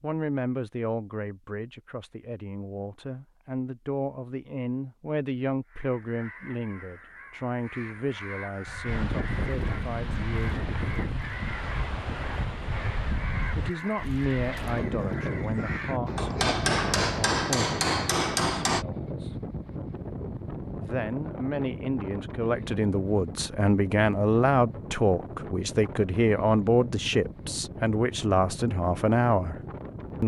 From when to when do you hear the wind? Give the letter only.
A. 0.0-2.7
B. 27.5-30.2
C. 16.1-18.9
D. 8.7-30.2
D.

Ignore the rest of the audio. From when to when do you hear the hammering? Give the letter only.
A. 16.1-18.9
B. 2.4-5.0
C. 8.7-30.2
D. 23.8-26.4
A.